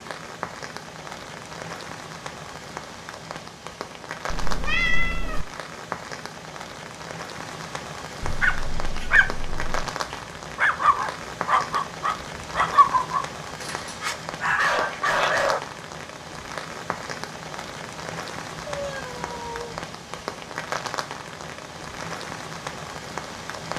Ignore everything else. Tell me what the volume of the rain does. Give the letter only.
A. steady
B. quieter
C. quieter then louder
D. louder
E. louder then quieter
A.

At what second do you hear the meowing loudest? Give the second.
5 s.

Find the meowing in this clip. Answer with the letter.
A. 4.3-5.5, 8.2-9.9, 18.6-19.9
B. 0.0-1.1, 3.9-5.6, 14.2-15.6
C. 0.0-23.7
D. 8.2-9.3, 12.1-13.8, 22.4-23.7
A.